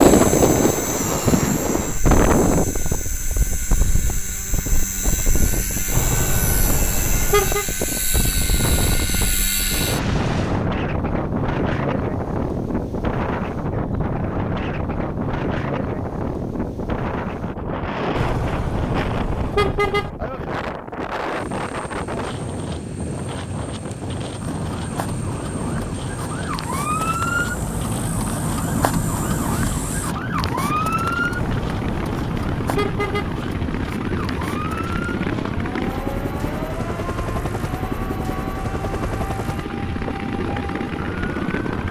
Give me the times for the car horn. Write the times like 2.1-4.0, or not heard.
5.9-7.7, 18.1-20.1, 31.4-33.4.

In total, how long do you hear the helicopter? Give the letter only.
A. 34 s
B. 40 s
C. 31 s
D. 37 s
C.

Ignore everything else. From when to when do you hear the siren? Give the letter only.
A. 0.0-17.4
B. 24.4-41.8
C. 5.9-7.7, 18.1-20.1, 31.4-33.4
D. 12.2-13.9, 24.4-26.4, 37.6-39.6
B.